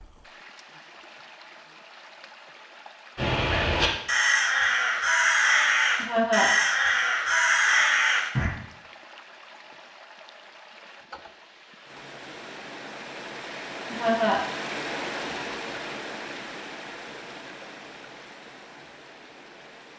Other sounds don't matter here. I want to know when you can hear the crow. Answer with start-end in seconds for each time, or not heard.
3.1-8.5.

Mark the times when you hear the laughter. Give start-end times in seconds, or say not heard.
6.0-6.5, 13.9-14.5.